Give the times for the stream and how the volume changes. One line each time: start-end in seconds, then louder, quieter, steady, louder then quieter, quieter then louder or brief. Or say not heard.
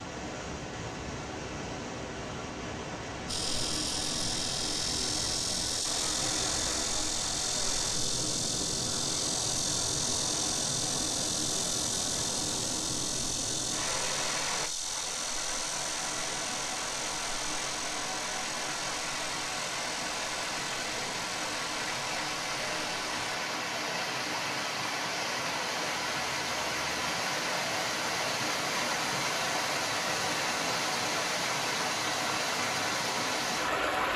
0.0-34.1 louder.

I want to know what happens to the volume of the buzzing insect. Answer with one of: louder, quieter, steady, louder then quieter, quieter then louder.
quieter.